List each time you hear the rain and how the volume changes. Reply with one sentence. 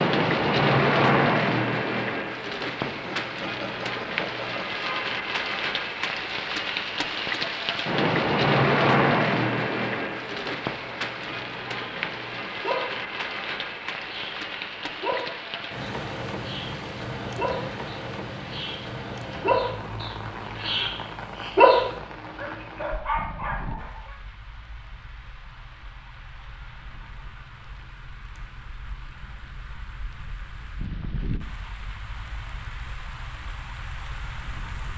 You can hear the rain from 0.0 to 34.9 s, getting quieter.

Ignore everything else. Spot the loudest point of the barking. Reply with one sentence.
The loudest moment of the barking is at 22 seconds.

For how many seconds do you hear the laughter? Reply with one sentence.
The laughter can be heard for 2 seconds in total.